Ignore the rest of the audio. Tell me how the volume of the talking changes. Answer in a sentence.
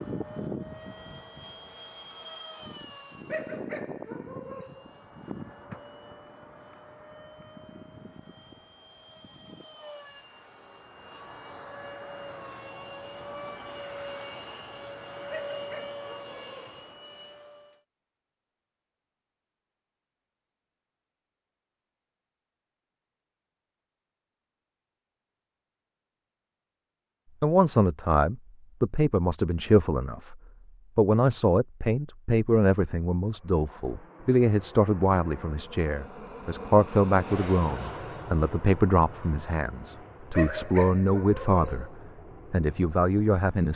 The volume of the talking stays about the same.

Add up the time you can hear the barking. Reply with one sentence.
You can hear the barking for 5 seconds altogether.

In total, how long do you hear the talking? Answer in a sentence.
You can hear the talking for 16 seconds altogether.